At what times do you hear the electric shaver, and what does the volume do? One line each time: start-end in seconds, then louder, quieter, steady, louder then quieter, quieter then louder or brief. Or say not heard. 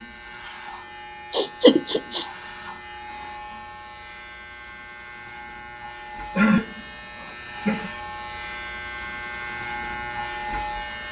0.0-11.0 louder.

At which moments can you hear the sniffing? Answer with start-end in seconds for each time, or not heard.
1.3-2.2, 6.3-7.9.